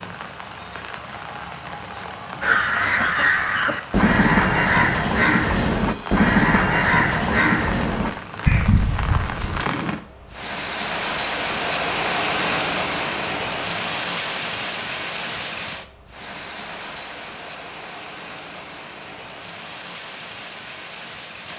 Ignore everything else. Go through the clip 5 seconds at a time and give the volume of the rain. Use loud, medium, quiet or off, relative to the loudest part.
medium, medium, loud, medium, medium.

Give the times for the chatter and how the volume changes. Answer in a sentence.
The chatter can't be heard in this clip.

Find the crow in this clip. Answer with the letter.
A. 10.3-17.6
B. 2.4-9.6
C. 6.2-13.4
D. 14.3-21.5
B.